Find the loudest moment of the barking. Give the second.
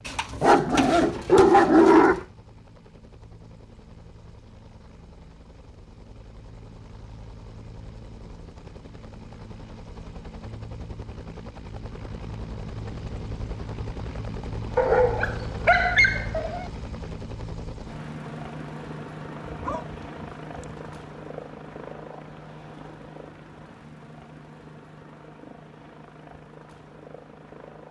2 s.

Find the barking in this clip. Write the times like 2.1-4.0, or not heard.
0.1-2.2, 14.8-16.6, 19.4-20.9.